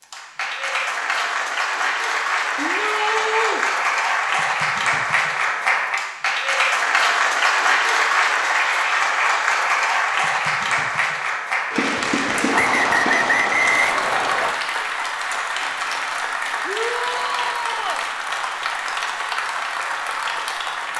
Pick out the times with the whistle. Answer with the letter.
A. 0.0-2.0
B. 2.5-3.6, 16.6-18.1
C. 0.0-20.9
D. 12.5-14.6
D.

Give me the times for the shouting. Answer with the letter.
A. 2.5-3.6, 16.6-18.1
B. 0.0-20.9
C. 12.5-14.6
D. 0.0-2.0
A.